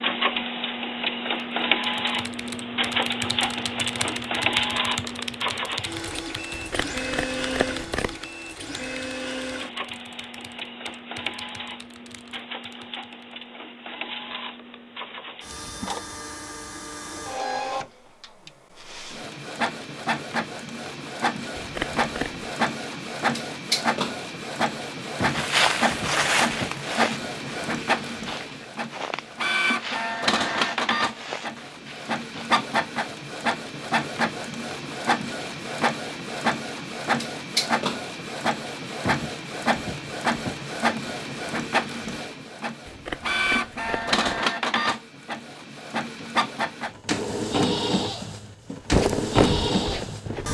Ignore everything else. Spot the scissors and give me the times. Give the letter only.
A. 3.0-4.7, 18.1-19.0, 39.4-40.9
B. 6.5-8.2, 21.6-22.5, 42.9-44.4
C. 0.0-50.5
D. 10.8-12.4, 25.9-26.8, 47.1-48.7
B.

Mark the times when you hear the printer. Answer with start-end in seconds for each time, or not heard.
0.0-50.5.